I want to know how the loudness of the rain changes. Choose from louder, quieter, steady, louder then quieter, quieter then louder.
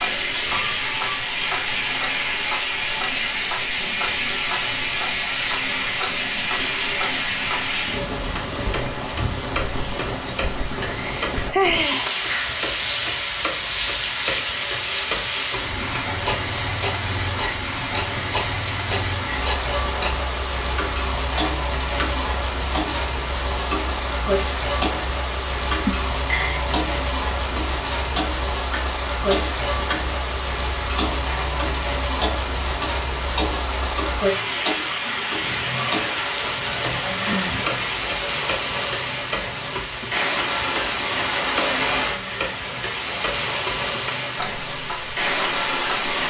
steady.